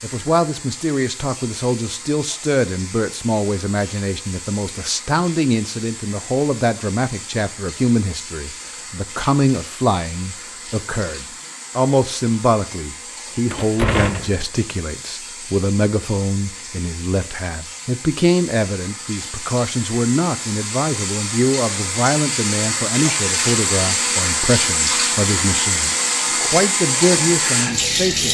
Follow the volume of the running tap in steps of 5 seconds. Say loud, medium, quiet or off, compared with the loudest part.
quiet, quiet, quiet, quiet, loud, loud.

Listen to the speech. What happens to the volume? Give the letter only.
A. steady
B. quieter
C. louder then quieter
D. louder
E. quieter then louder
A.